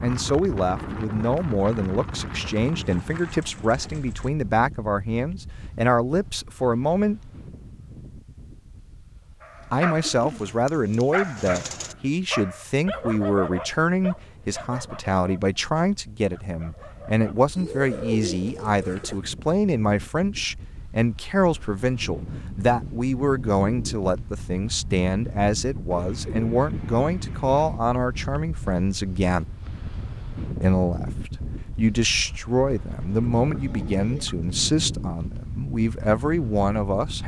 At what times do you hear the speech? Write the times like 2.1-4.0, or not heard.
0.0-7.2, 9.7-29.4, 30.6-37.2.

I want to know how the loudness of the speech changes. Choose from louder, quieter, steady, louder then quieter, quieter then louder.
steady.